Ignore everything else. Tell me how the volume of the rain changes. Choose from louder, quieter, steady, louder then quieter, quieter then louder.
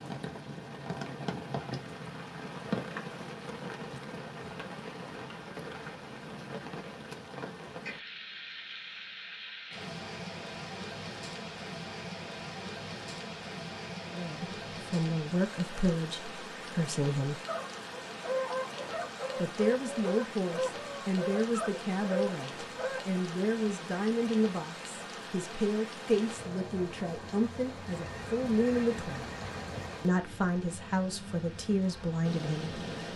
steady.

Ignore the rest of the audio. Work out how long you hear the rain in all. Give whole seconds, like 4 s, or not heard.
33 s.